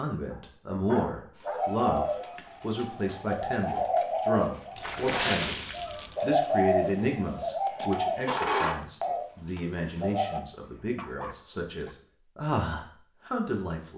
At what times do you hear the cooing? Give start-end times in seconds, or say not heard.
1.4-10.4.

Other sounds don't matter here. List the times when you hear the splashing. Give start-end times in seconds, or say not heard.
4.8-6.2.